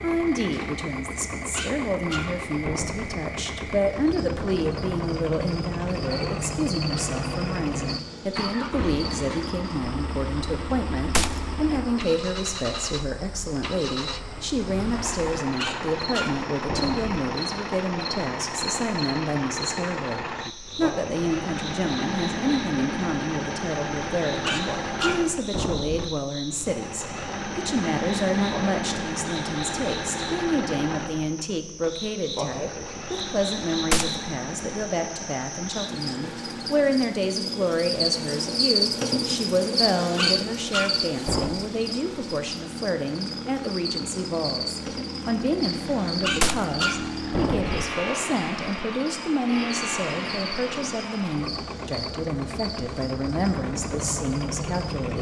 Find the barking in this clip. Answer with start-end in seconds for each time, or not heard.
1.5-3.1, 15.6-17.2, 24.4-26.1, 40.1-41.6, 46.2-47.9.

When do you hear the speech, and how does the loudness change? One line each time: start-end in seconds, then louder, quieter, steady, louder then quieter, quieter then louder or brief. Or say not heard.
0.0-55.1 steady.